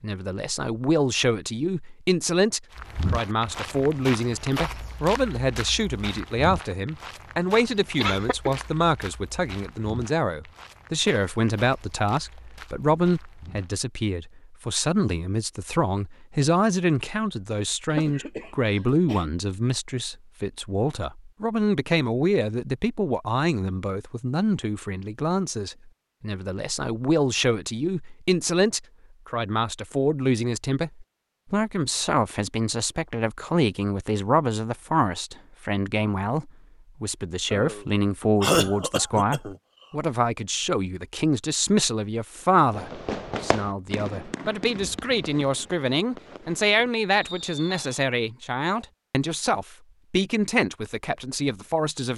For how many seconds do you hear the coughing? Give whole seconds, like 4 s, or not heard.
4 s.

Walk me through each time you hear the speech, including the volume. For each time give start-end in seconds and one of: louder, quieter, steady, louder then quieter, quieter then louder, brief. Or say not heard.
0.0-52.1 steady.